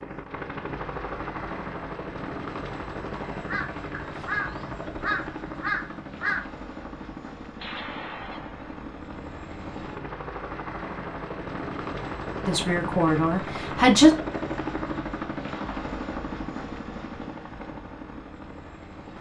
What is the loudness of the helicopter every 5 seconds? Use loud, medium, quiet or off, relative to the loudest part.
loud, medium, loud, loud.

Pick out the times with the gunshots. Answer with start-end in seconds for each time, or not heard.
7.5-8.8.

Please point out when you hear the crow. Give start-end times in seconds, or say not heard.
3.3-6.5.